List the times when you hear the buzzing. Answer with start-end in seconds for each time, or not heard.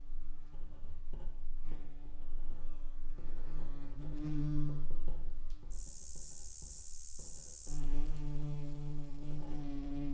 0.0-10.0.